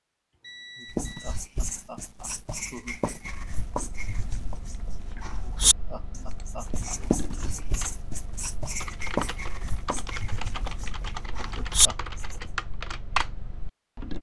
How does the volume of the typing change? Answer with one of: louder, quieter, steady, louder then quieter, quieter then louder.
louder.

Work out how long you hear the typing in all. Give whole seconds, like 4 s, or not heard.
11 s.